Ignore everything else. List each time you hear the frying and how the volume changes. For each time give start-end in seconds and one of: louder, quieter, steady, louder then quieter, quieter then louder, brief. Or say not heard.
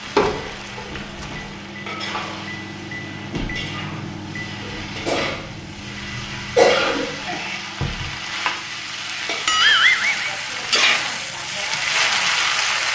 0.0-12.9 louder.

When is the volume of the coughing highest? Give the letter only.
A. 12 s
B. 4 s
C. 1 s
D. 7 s
D.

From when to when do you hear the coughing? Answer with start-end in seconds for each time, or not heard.
4.6-7.1.